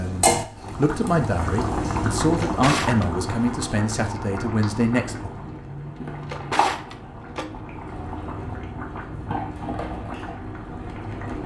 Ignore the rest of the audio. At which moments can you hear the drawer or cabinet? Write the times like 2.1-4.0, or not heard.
2.3-3.0, 6.0-7.8.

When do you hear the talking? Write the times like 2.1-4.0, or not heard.
0.0-5.3.